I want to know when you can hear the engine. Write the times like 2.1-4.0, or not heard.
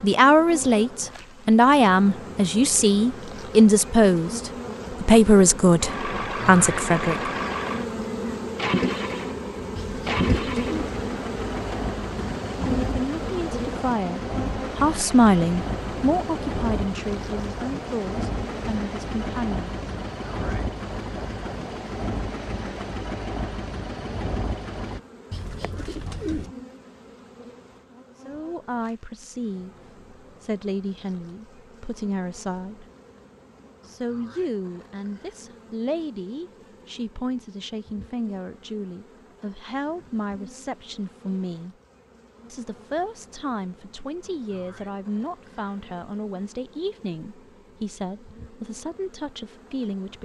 5.8-25.0.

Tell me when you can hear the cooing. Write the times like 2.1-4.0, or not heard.
9.8-10.9, 25.3-26.5.